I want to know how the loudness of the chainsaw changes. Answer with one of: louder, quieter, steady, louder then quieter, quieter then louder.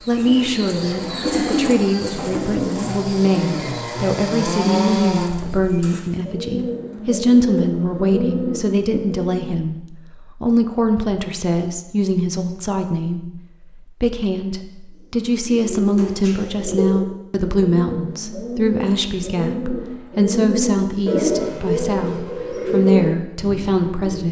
louder.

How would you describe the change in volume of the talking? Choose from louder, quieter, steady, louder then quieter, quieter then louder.
steady.